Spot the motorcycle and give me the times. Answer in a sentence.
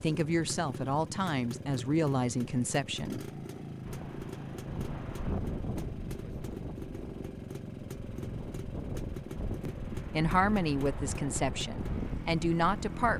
You can hear the motorcycle from 0.0 to 13.1 s.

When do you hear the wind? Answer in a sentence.
The wind can be heard from 3.8 to 13.1 s.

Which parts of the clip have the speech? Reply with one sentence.
The speech can be heard from 0.0 to 3.3 s and from 9.7 to 13.1 s.